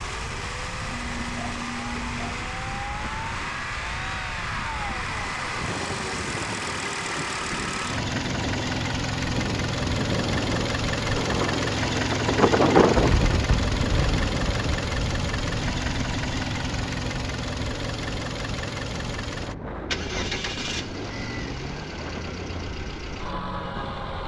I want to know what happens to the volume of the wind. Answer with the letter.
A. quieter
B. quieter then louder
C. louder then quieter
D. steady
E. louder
C.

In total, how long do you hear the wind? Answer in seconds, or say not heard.
24 s.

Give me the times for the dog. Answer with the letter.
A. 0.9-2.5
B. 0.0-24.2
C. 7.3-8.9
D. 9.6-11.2
A.